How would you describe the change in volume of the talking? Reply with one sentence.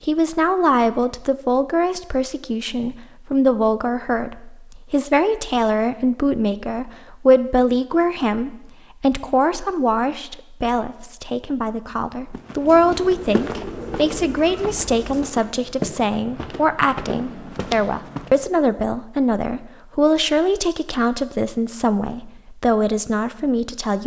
The volume of the talking stays about the same.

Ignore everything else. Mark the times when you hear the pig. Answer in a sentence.
The pig can't be heard in this clip.